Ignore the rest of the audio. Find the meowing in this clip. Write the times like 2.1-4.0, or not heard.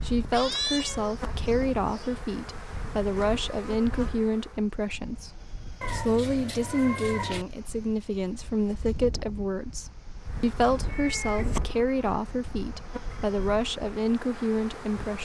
0.3-2.2, 5.8-7.5, 10.8-11.6.